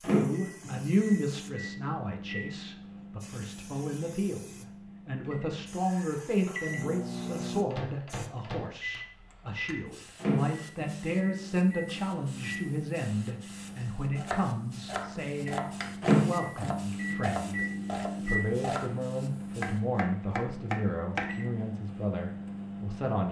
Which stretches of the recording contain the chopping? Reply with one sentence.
The chopping can be heard from 13.9 to 18.9 s and from 19.6 to 21.4 s.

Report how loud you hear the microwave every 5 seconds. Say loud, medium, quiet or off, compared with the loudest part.
medium, medium, medium, loud, medium.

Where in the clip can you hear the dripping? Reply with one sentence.
The dripping can't be heard in this clip.